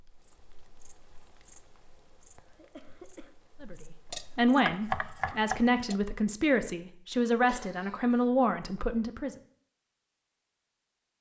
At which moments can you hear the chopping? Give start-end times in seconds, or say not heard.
4.1-6.0.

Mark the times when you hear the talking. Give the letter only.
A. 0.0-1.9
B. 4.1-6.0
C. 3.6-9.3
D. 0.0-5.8
C.